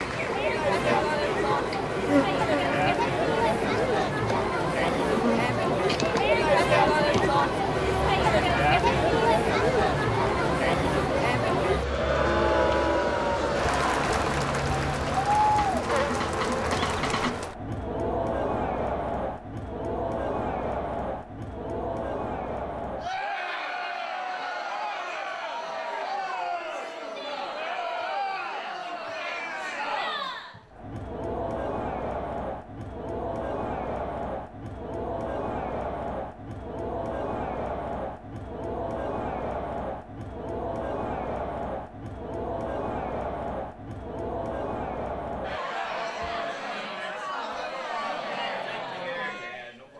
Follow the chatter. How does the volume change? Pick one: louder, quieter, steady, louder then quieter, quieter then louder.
quieter.